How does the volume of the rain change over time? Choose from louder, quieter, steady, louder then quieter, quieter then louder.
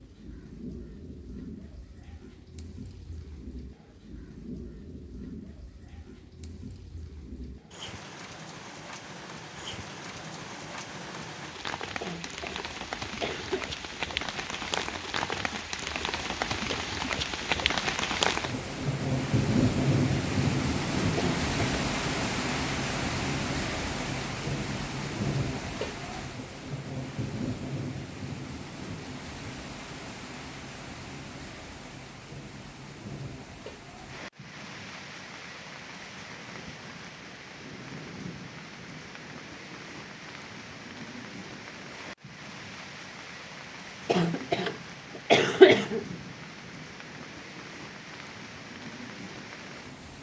louder then quieter.